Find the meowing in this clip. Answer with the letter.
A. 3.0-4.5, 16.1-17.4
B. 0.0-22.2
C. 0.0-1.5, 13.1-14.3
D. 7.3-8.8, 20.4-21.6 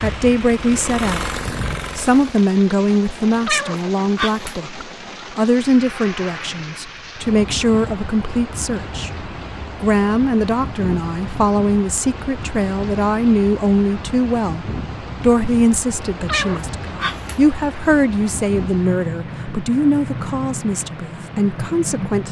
A.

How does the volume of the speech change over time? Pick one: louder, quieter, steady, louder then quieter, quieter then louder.
steady.